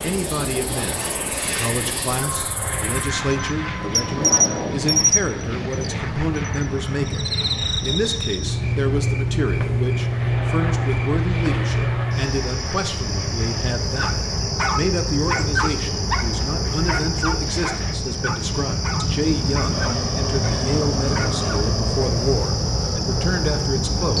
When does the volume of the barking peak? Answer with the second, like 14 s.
15 s.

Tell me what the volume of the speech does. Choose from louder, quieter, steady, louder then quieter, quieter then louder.
steady.